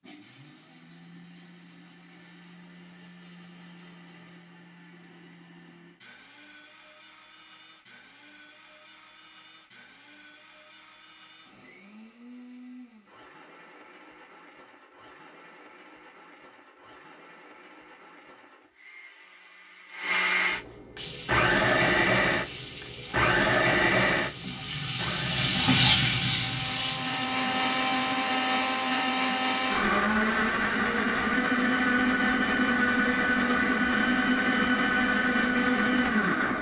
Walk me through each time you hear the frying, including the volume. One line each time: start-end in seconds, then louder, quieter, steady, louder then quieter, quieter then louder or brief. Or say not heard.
20.9-28.2 louder then quieter.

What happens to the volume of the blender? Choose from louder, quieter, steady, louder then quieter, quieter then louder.
louder.